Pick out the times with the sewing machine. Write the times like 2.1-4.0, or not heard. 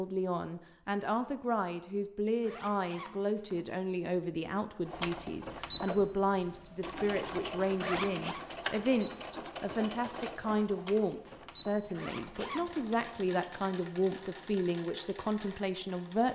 4.8-16.2.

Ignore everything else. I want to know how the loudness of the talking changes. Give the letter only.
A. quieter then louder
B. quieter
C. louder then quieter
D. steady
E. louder
D.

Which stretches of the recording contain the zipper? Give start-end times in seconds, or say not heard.
2.4-3.7, 7.8-8.4, 11.9-12.7.